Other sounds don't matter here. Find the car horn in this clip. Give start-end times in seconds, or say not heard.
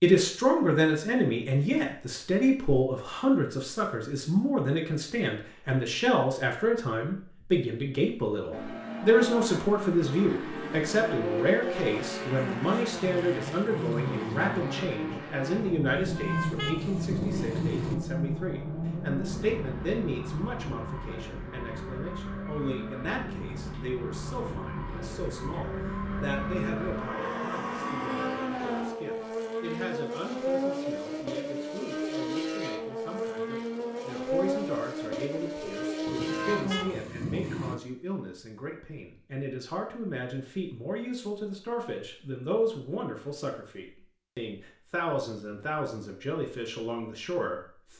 15.9-17.9, 36.0-37.8.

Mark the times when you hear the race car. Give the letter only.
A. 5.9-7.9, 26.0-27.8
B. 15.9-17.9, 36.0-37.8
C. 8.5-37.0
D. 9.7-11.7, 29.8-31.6
C.